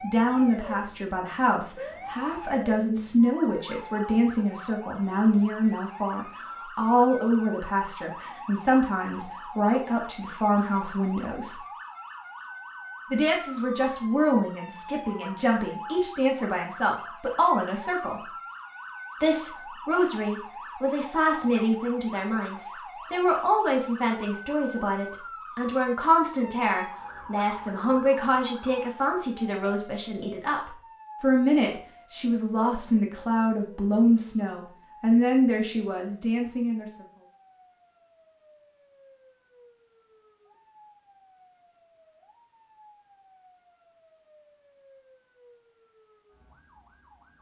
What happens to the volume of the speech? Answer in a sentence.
The loudness of the speech stays about the same.